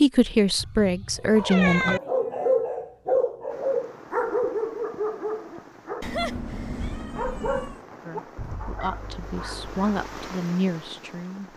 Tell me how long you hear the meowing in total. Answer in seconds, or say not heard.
3 s.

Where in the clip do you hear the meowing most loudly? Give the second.
2 s.